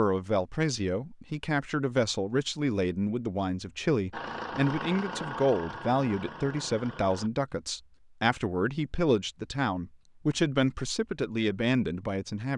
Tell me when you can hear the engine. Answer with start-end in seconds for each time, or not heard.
4.1-7.3.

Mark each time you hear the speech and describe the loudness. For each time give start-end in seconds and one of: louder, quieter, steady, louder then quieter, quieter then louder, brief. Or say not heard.
0.0-12.5 steady.